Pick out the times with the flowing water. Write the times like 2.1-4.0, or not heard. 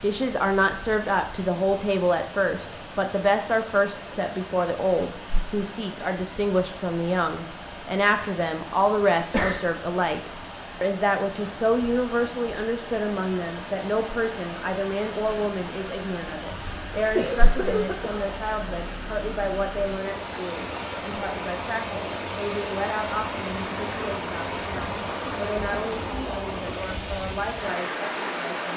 0.0-28.7.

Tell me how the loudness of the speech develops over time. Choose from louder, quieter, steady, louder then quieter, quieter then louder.
quieter.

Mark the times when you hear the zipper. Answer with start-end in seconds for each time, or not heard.
not heard.